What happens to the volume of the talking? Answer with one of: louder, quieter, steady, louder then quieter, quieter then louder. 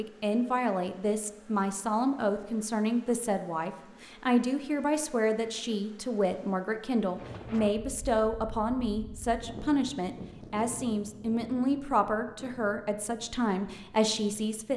steady.